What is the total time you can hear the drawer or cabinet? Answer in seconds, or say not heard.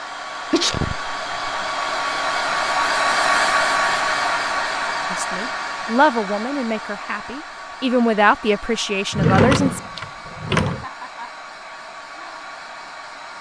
2 s.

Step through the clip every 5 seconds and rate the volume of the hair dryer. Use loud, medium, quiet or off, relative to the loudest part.
loud, medium, quiet.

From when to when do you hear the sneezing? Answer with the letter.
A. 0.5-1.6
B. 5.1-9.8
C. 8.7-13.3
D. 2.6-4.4
A.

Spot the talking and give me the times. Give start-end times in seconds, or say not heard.
5.1-9.8.